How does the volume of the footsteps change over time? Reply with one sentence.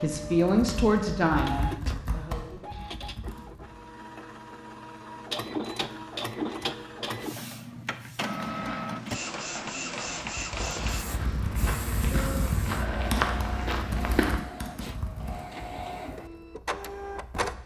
The volume of the footsteps goes up.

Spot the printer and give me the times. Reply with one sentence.
You can hear the printer from 0.0 to 17.6 s.